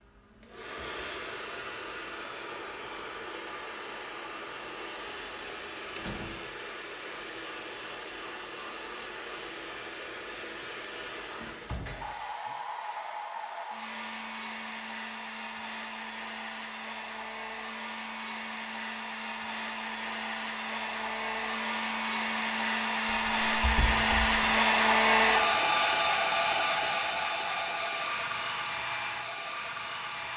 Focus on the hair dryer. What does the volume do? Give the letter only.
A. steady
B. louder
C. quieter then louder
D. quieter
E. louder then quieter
B.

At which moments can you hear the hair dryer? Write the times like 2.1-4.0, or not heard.
0.0-30.3.